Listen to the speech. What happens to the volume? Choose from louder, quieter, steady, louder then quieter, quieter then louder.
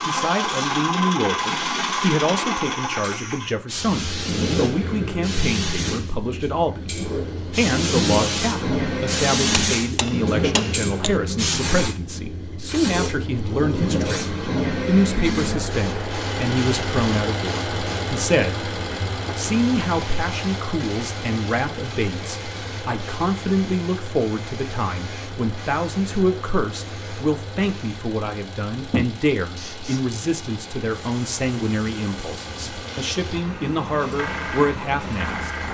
steady.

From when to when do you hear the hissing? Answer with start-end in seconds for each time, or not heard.
0.0-35.6.